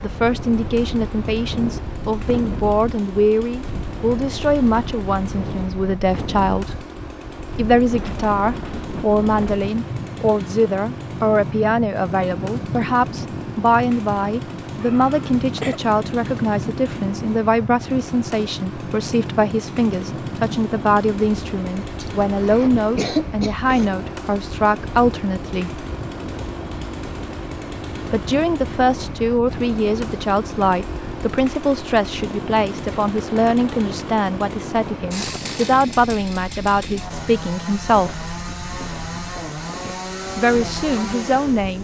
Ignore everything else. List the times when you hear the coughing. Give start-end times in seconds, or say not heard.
14.8-15.8, 22.0-23.9.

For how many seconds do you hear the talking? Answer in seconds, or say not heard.
36 s.